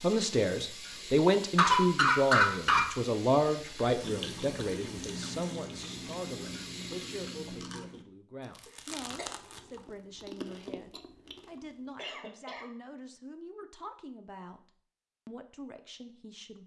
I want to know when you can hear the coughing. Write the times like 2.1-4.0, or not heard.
1.6-2.9, 8.7-9.3, 11.6-12.7.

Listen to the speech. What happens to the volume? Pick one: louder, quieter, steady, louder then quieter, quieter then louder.
quieter.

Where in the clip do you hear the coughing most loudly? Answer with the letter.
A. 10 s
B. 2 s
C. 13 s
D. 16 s
B.